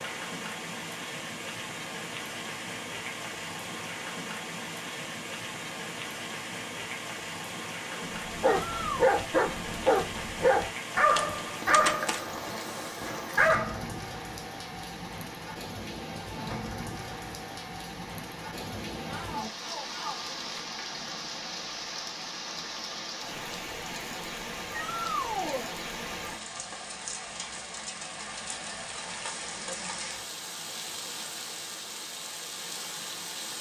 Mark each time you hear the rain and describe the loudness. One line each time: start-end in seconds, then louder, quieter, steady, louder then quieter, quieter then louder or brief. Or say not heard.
0.0-33.5 steady.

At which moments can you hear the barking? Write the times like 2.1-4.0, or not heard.
8.0-13.8.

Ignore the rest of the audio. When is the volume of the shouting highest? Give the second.
25 s.